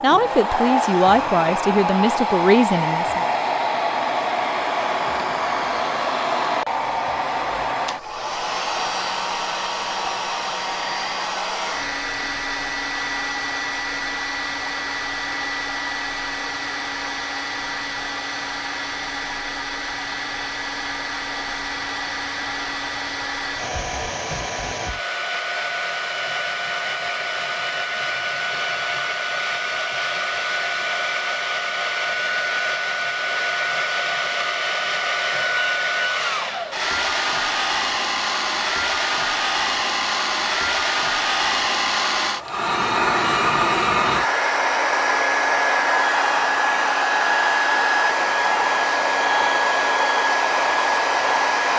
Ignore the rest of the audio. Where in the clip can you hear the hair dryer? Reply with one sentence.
The hair dryer can be heard from 0.0 to 51.7 s.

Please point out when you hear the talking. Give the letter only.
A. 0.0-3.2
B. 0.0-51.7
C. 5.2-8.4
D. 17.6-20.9
A.